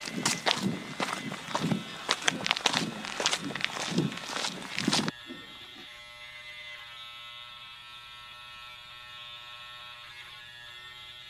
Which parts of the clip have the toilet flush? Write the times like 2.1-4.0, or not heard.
5.2-5.9.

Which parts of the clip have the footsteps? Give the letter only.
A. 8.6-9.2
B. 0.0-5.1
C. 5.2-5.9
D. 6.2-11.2
B.